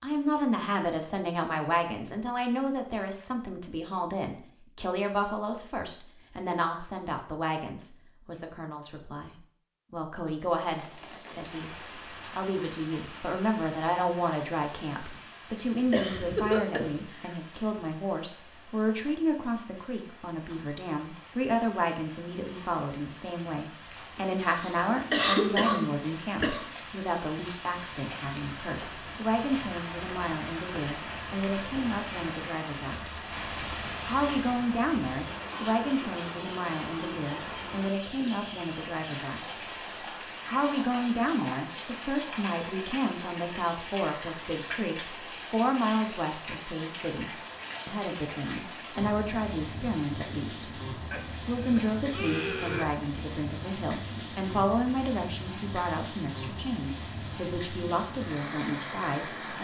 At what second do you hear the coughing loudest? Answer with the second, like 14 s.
25 s.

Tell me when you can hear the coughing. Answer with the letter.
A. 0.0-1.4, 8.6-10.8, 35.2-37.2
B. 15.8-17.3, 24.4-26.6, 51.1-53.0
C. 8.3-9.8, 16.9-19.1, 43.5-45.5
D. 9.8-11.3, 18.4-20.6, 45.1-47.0
B.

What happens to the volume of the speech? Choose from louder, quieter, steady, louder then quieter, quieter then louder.
steady.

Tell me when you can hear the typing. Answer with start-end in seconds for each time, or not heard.
not heard.